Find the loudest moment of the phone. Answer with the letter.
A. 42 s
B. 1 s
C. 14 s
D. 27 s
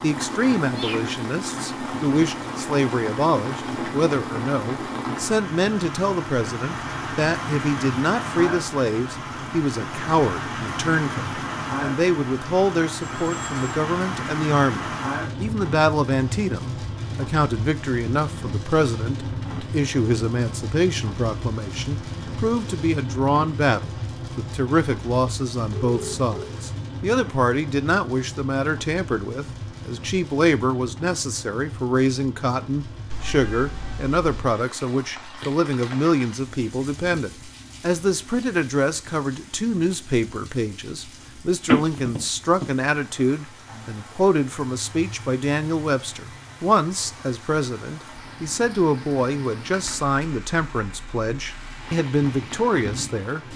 A.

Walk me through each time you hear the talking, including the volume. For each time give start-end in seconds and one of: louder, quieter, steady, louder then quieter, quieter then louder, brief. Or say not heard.
0.0-53.5 steady.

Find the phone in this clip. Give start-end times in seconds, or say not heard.
13.0-13.6, 25.7-26.6, 41.6-42.6.